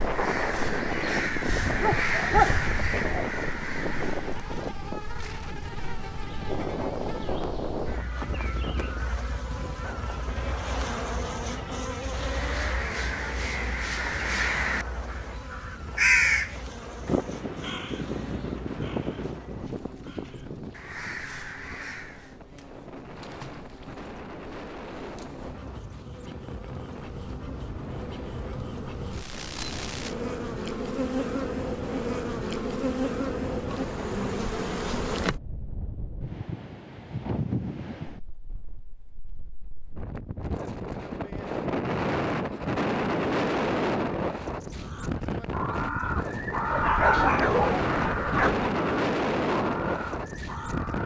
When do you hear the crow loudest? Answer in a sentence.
The loudest moment of the crow is at 16 seconds.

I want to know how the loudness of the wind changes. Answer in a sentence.
The loudness of the wind goes down, then up.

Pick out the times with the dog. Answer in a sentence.
You can hear the dog from 1.4 to 3.2 s and from 46.7 to 48.7 s.